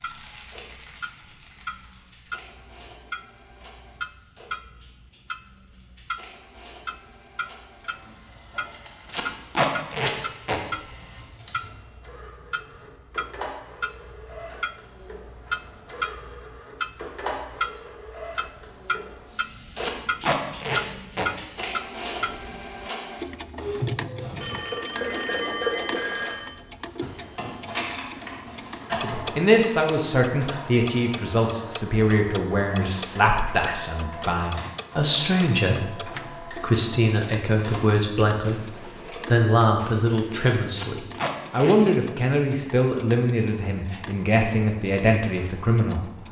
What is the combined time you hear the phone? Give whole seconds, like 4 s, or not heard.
2 s.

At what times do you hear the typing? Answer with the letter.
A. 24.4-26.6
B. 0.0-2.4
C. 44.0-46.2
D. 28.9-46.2
B.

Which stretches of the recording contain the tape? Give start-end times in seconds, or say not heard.
9.1-10.6, 19.8-21.3, 40.8-41.8.